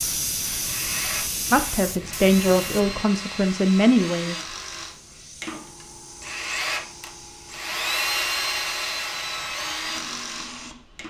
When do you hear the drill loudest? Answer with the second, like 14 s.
8 s.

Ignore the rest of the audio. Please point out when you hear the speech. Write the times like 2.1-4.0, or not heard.
1.5-4.3.